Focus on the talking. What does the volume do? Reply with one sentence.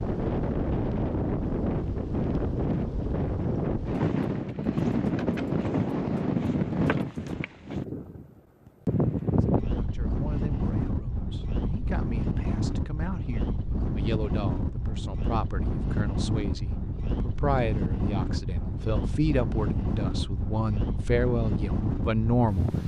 The loudness of the talking goes up.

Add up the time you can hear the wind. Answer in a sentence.
The wind can be heard for 23 seconds in total.